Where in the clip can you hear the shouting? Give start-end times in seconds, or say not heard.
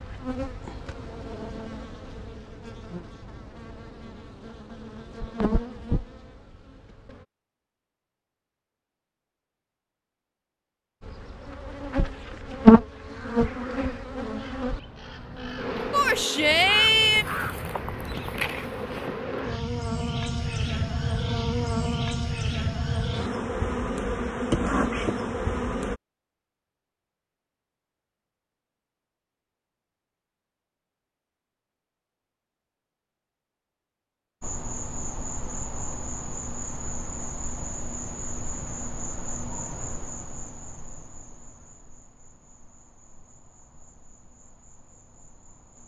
15.9-17.2.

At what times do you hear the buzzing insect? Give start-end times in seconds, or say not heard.
0.0-7.2, 11.0-26.0, 34.4-45.8.